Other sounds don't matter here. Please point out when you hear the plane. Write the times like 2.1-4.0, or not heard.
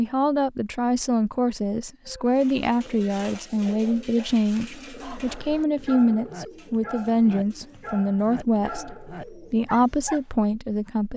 not heard.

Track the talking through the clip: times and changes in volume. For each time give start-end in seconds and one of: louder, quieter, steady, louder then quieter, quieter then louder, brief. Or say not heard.
0.0-11.1 steady.